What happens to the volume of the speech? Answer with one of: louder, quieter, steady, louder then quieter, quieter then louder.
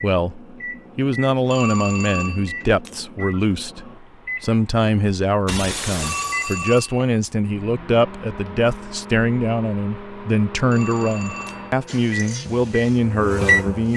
steady.